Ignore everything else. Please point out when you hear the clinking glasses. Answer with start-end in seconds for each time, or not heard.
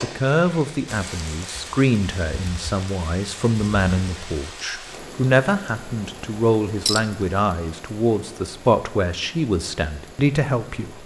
6.8-7.2.